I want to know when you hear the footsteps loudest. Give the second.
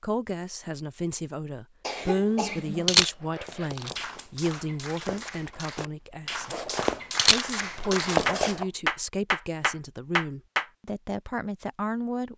8 s.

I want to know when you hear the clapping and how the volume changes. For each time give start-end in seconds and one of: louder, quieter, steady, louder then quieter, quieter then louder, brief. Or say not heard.
4.0-10.9 louder.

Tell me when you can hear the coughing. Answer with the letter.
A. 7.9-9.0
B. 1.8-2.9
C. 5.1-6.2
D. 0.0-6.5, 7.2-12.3
B.